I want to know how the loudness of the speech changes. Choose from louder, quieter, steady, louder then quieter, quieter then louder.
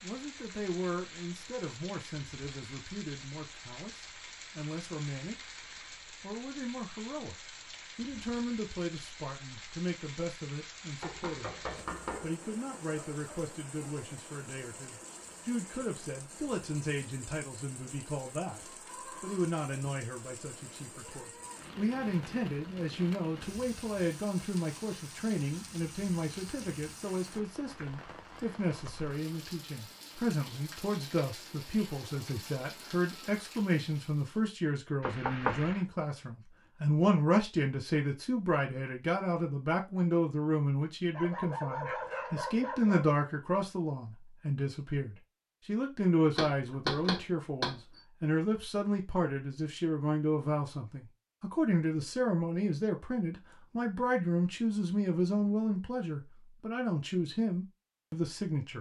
louder.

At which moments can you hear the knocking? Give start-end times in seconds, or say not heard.
11.0-12.3, 35.0-35.8, 46.4-48.0.